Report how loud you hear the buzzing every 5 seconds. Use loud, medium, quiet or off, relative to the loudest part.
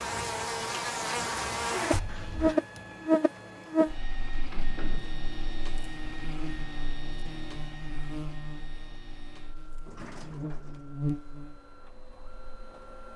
loud, quiet, medium.